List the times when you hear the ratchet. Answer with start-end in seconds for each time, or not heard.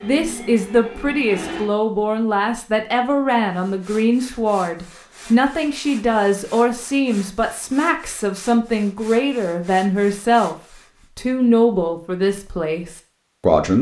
not heard.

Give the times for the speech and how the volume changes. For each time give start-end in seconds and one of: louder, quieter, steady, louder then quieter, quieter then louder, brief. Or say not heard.
0.0-13.7 steady.